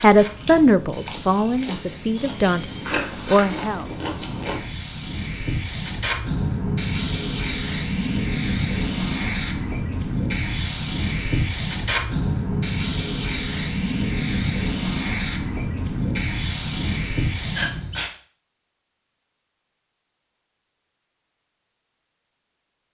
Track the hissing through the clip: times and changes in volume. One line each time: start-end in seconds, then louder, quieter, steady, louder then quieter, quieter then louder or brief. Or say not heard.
0.0-18.1 louder.